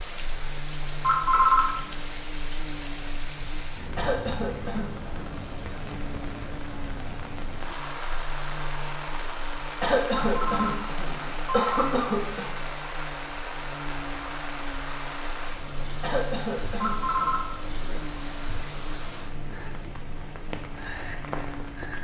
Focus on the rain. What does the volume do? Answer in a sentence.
The volume of the rain stays about the same.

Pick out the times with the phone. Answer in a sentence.
You can hear the phone from 1.0 to 1.9 s, from 10.1 to 12.0 s and from 16.8 to 18.2 s.